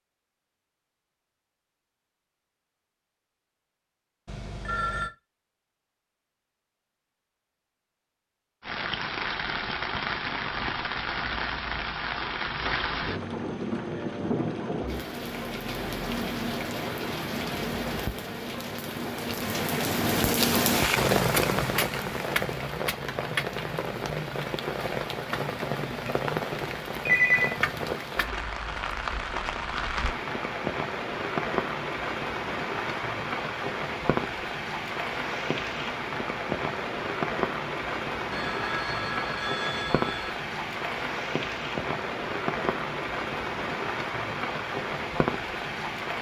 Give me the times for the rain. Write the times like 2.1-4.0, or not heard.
8.6-46.1.